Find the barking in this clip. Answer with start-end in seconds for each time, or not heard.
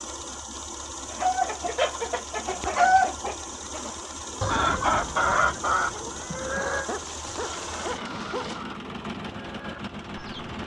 6.7-8.6.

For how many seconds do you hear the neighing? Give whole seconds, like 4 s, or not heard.
2 s.